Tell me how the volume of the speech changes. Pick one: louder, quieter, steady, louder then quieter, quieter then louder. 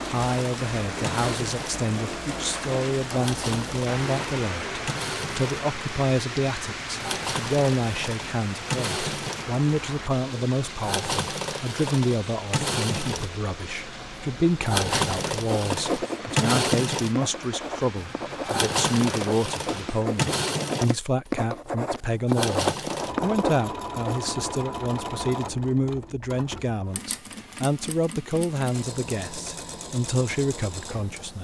steady.